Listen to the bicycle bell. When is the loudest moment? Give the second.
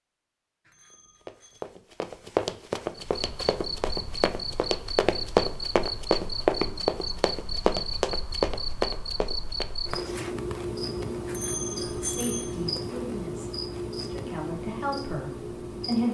12 s.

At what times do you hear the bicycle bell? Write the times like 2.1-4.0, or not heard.
0.7-1.7, 11.2-12.6.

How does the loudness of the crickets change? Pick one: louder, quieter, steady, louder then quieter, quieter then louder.
steady.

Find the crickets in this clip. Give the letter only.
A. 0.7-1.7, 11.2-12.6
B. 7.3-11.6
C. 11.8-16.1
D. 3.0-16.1
D.